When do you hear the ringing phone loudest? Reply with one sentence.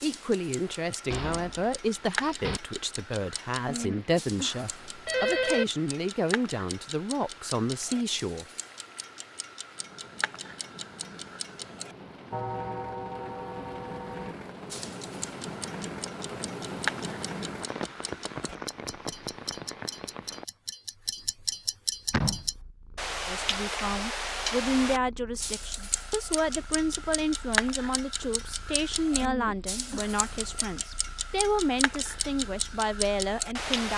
The loudest moment of the ringing phone is at 5 seconds.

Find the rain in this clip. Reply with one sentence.
The rain can be heard from 0.0 to 20.4 s.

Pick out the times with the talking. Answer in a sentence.
The talking can be heard from 0.0 to 8.4 s and from 23.2 to 33.9 s.